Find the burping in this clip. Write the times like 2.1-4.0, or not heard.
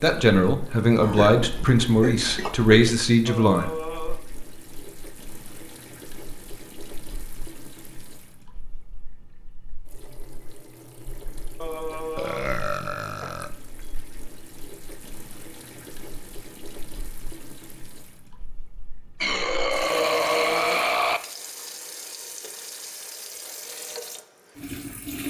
1.0-2.9, 12.2-13.5, 19.2-21.2.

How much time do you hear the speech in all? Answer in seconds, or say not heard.
4 s.